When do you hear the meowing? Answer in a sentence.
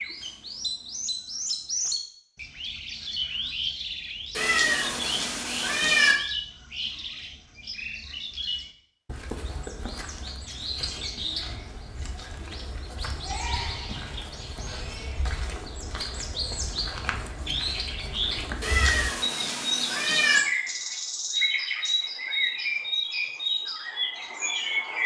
The meowing can be heard from 4.3 to 6.2 s and from 18.6 to 20.4 s.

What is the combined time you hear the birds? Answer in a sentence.
You can hear the birds for 25 seconds altogether.